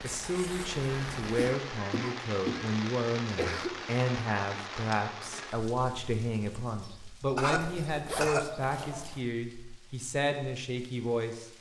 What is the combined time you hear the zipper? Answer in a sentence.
You can hear the zipper for 2 seconds altogether.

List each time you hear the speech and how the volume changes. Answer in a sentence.
The speech can be heard from 0.0 to 11.5 s, at a steady volume.